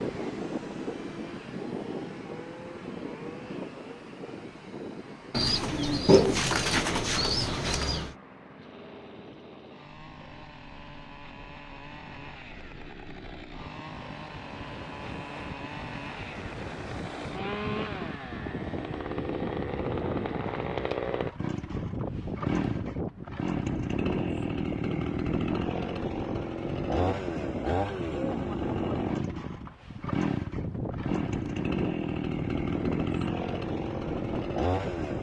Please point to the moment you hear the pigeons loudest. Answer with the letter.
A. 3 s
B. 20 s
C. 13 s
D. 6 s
D.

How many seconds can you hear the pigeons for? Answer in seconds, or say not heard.
3 s.